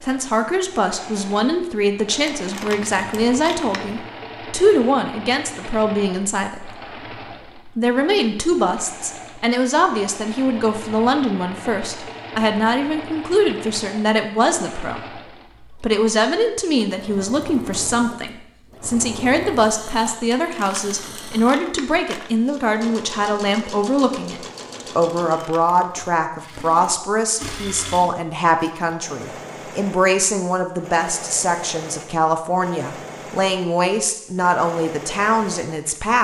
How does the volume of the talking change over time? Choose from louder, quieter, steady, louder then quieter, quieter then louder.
steady.